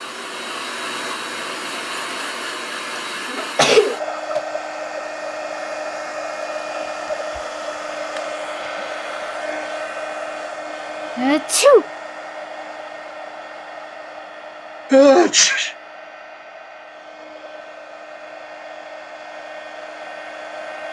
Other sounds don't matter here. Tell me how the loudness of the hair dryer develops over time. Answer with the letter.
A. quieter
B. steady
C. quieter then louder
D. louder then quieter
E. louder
A.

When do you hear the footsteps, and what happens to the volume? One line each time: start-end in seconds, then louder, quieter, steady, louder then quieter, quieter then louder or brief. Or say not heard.
not heard.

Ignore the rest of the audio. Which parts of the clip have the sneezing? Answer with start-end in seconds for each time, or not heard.
3.4-4.4, 11.2-11.8, 14.9-15.7.